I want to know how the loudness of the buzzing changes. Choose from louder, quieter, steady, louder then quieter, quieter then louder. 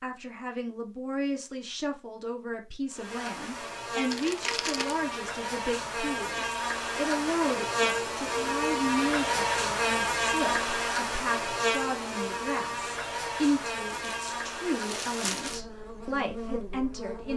louder then quieter.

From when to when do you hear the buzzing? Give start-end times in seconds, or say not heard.
2.9-17.3.